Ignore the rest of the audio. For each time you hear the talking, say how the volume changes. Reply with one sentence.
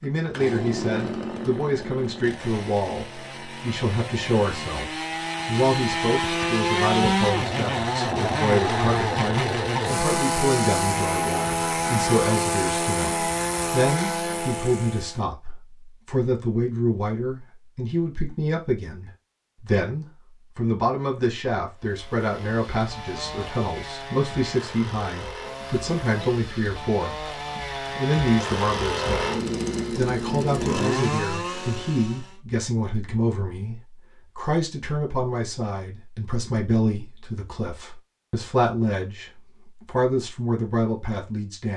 The talking can be heard from 0.0 to 27.1 s, at a steady volume; and from 27.9 to 41.7 s, at a steady volume.